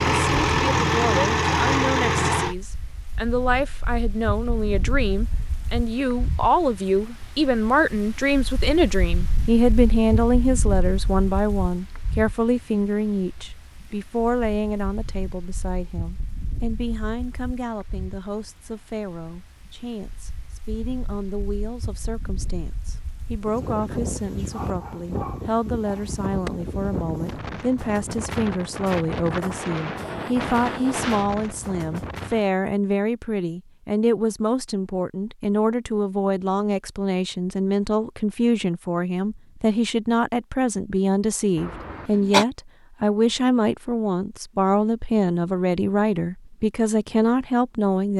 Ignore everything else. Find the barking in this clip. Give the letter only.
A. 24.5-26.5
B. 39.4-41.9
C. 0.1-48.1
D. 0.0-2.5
A.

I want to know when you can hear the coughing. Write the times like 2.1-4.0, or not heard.
41.5-42.5.